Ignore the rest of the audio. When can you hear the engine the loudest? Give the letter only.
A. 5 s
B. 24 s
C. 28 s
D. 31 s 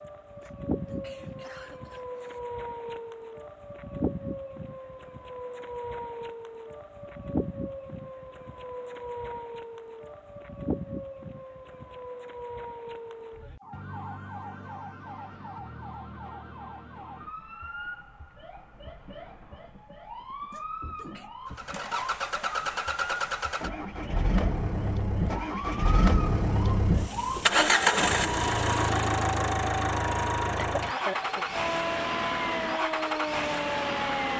C.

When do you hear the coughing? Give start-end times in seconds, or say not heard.
0.4-2.4, 20.5-21.3, 30.6-31.4.